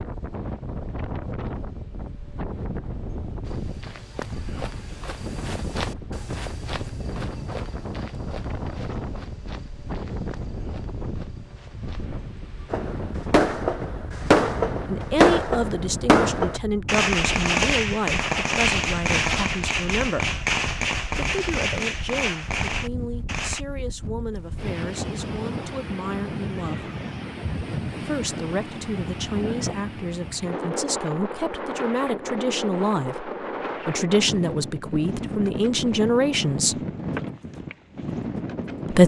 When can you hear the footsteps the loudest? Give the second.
6 s.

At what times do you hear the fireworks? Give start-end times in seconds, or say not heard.
12.7-23.6.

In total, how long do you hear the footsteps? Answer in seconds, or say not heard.
9 s.